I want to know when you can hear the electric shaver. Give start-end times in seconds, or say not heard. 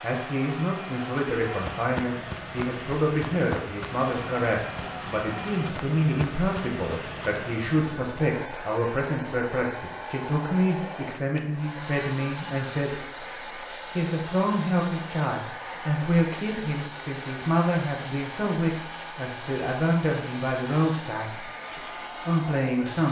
not heard.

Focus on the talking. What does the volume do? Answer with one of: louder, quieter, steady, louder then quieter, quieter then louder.
steady.